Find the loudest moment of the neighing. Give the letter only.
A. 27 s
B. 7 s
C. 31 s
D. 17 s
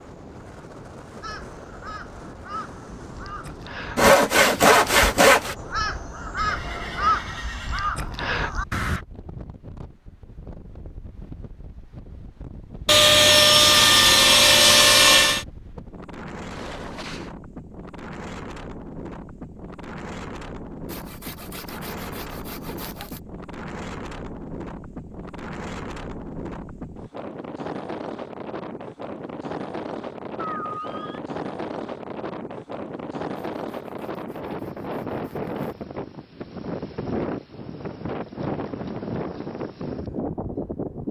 C.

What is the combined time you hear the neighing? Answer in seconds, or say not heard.
3 s.